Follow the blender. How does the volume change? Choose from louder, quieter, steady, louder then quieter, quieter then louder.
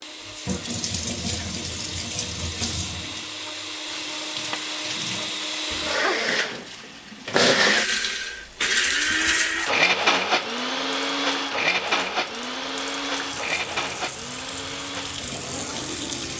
louder then quieter.